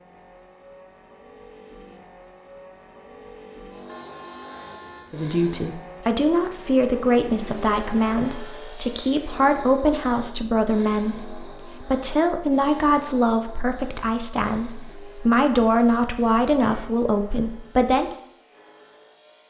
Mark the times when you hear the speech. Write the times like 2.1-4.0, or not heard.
5.1-18.1.